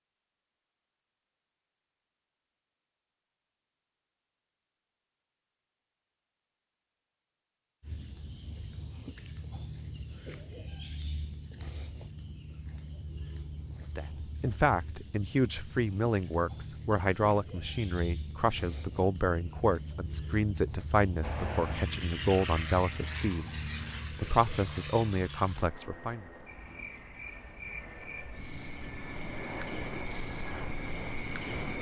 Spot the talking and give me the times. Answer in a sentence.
The talking can be heard from 13.9 to 26.2 s.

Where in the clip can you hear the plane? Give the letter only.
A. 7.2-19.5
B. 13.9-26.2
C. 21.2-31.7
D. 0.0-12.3
C.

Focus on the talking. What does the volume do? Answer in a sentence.
The loudness of the talking stays about the same.